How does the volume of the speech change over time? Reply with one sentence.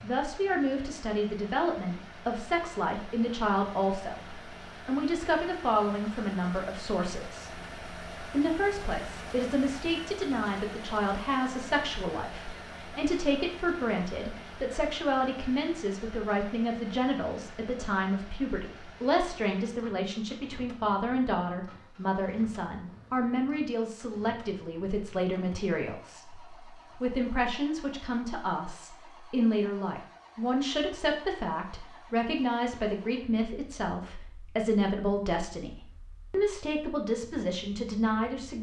The loudness of the speech stays about the same.